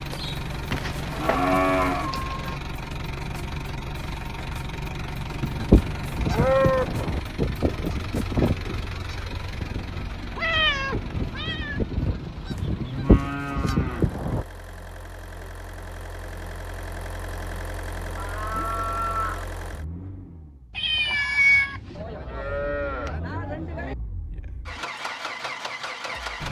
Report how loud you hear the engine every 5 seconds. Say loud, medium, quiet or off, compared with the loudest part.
loud, loud, medium, medium, medium, loud.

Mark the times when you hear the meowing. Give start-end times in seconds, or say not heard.
0.7-2.6, 10.3-11.8, 20.8-22.1.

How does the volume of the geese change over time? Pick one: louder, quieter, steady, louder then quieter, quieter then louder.
quieter then louder.